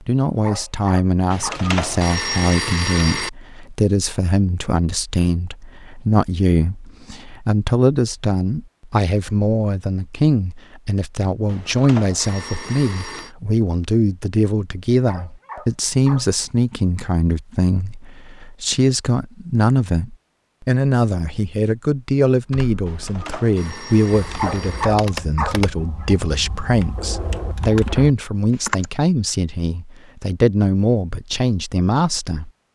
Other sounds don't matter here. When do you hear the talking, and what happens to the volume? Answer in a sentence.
The talking can be heard from 0.0 to 32.5 s, at a steady volume.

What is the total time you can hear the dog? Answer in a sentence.
You can hear the dog for 5 seconds altogether.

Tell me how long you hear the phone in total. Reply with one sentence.
You can hear the phone for 6 seconds altogether.